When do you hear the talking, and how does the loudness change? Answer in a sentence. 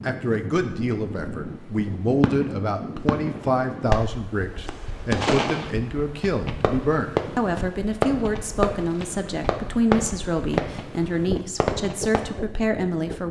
You can hear the talking from 0.0 to 13.2 s, at a steady volume.